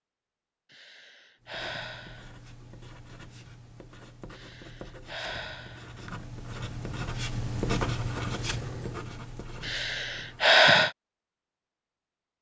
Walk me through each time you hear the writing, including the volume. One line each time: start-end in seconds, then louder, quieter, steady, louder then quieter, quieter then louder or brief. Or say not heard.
1.4-10.6 louder then quieter.